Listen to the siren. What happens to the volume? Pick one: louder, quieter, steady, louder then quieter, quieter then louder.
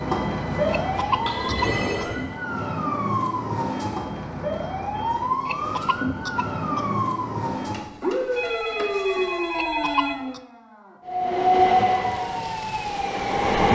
quieter.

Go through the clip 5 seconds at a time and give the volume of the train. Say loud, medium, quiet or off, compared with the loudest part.
medium, off, loud.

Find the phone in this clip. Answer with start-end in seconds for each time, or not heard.
0.5-2.4, 7.5-10.2.